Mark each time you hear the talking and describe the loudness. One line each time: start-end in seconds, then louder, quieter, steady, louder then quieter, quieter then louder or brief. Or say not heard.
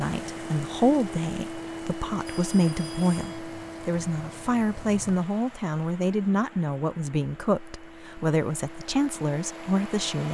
0.0-10.2 steady.